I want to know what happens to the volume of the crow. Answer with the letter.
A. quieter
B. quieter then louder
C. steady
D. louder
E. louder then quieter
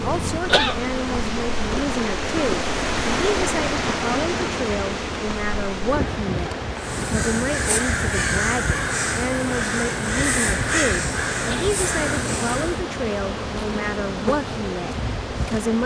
C.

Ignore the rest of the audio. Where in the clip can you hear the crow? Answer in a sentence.
The crow can be heard from 6.8 to 12.8 s.